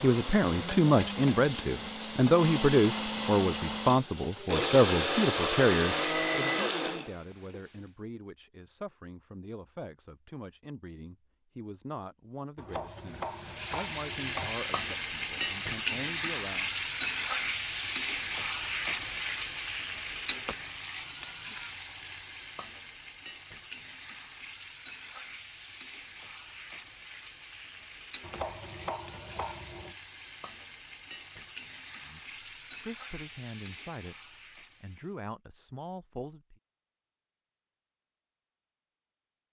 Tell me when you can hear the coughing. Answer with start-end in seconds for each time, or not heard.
not heard.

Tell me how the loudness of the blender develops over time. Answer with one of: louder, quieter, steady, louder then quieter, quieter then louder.
louder.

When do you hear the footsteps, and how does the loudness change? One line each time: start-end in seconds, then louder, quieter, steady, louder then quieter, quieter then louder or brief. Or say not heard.
not heard.